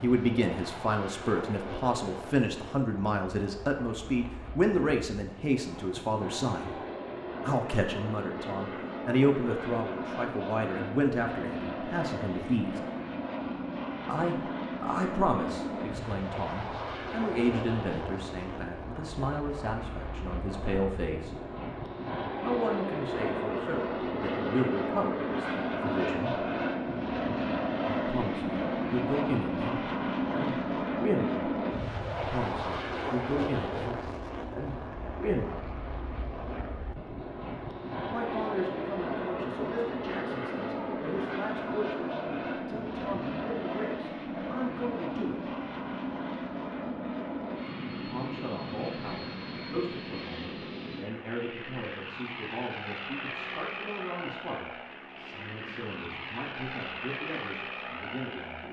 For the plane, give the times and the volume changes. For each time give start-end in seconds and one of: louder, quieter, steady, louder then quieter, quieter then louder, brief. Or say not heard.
0.0-58.6 louder then quieter.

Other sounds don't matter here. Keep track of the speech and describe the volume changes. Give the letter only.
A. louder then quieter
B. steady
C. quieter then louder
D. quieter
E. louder
D.